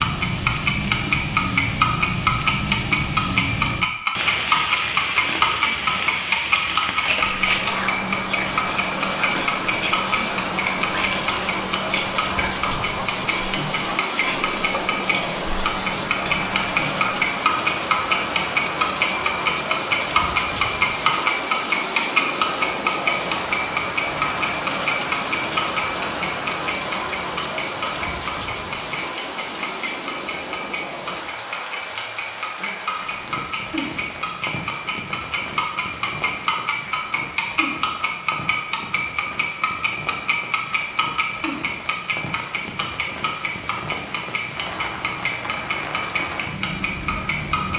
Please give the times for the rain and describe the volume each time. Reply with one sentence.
You can hear the rain from 0.0 to 47.7 s, getting quieter.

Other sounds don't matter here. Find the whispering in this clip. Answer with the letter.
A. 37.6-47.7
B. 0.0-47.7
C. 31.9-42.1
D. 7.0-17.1
D.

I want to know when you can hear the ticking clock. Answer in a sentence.
The ticking clock can be heard from 0.0 to 47.7 s.